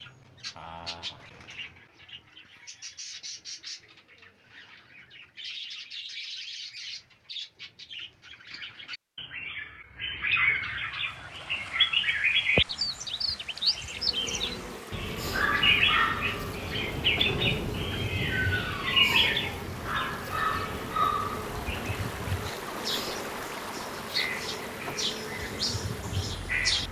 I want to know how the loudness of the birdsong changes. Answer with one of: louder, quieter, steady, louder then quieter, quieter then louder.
louder then quieter.